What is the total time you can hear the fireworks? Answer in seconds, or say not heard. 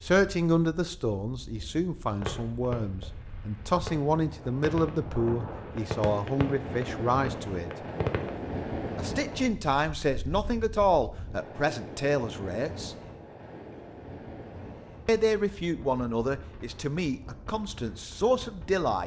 6 s.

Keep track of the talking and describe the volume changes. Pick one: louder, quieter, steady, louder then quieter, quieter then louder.
steady.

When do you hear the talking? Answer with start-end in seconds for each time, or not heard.
0.0-7.7, 8.9-12.9, 15.1-19.0.